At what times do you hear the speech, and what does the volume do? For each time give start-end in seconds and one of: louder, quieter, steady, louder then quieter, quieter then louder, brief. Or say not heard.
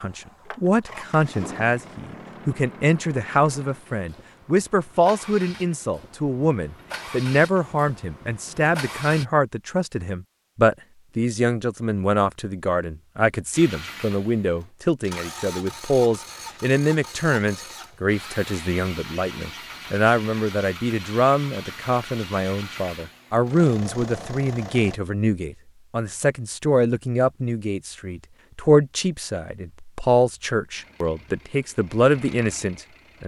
0.0-33.2 steady.